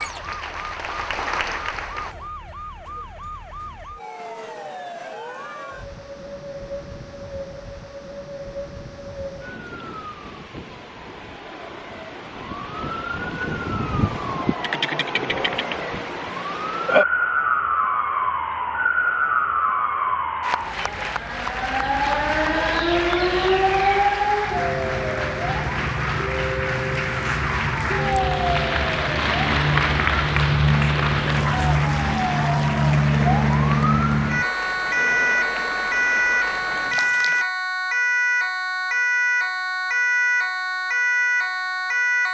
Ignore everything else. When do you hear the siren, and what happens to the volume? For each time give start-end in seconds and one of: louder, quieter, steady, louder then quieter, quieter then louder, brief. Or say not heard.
0.0-42.2 louder.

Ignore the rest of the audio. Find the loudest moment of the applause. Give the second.
30 s.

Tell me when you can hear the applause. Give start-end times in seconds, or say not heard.
0.0-2.1, 20.4-37.5.